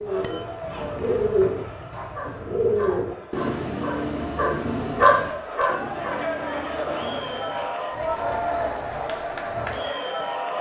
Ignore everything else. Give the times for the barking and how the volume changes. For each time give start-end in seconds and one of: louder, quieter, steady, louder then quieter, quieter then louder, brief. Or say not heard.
2.1-10.4 louder then quieter.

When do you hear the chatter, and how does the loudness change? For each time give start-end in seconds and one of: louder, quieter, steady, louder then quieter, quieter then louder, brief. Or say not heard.
0.0-10.5 quieter then louder.